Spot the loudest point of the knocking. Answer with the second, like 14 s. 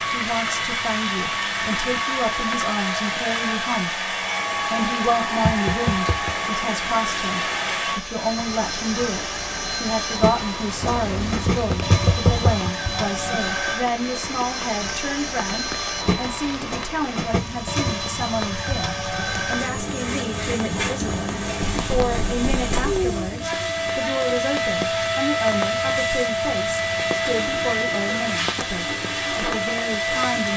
12 s.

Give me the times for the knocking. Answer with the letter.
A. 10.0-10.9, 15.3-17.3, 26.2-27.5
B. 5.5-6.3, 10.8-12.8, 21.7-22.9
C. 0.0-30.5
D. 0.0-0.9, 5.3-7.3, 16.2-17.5
B.